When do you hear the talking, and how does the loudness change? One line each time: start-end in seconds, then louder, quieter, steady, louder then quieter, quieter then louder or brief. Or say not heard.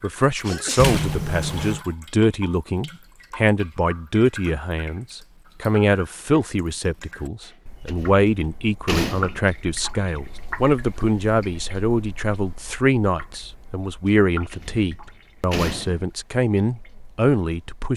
0.0-17.9 steady.